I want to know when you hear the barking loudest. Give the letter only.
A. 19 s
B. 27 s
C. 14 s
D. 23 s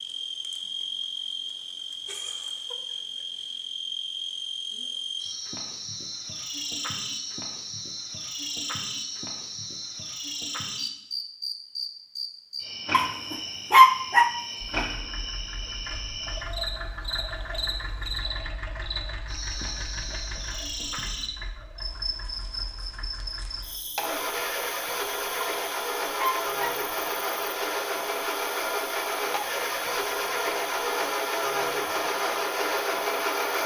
C.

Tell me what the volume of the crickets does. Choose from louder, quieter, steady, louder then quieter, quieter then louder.
quieter.